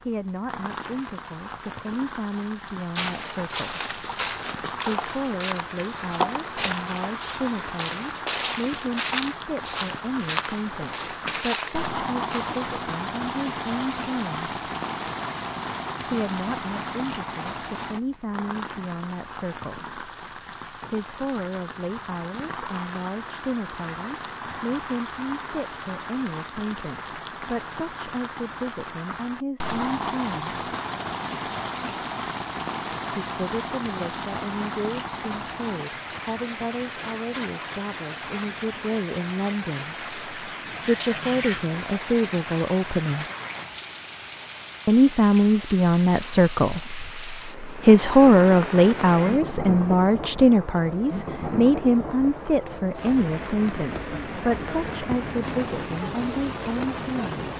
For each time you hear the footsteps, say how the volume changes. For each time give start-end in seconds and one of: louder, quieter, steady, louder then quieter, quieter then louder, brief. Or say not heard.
3.0-12.8 steady.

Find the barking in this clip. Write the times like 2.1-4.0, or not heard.
not heard.